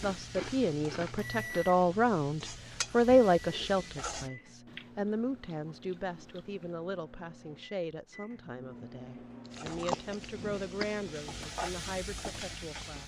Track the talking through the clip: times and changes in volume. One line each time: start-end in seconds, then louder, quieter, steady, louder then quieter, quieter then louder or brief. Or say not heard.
0.0-13.0 quieter.